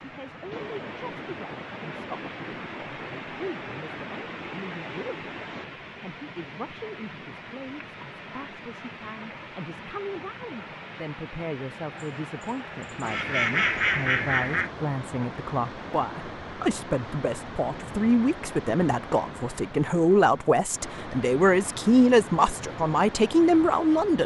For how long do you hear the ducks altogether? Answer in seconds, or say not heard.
3 s.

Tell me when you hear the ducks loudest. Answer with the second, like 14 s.
14 s.